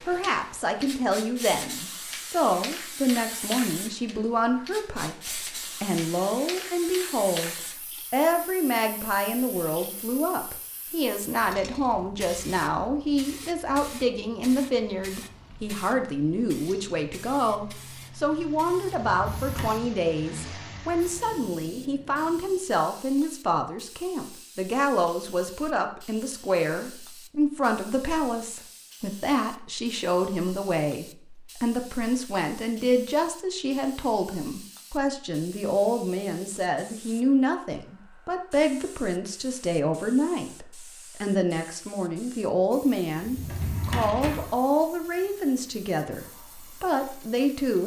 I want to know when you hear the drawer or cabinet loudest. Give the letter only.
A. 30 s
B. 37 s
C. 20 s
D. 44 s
D.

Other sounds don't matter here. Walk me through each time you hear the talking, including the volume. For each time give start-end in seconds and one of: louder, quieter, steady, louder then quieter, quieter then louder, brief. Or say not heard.
0.0-47.8 steady.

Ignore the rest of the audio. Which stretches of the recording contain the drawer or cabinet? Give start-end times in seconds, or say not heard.
19.1-19.8, 43.1-44.5.